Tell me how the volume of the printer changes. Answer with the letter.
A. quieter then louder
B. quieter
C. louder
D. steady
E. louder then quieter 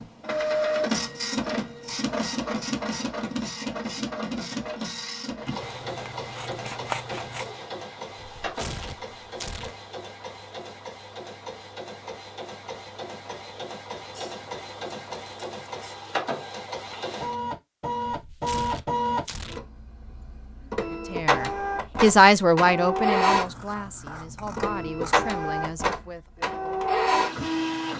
A.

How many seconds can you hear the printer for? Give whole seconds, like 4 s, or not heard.
28 s.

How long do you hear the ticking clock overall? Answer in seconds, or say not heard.
not heard.